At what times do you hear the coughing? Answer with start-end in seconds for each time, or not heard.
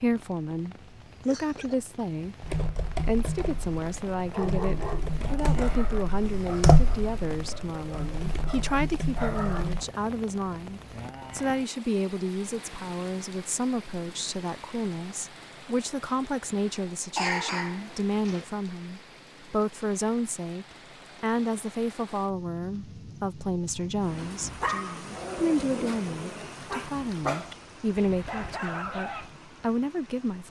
1.2-1.9, 17.1-18.4.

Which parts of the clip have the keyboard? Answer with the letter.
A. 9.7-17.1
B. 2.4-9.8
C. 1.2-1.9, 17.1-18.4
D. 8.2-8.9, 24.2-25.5
B.